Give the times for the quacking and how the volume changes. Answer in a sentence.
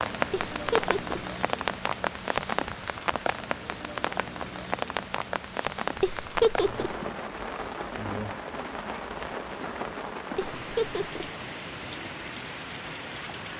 You can't hear the quacking here.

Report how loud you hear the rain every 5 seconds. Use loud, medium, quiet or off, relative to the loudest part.
loud, loud, medium.